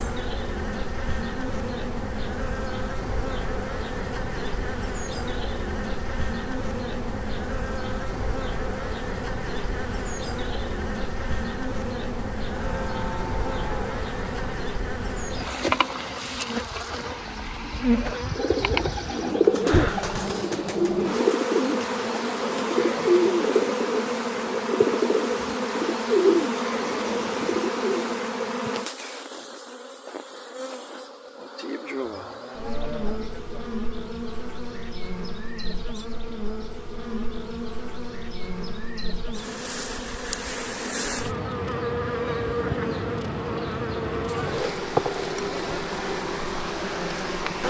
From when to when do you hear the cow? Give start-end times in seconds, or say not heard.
12.6-14.6, 32.0-33.7.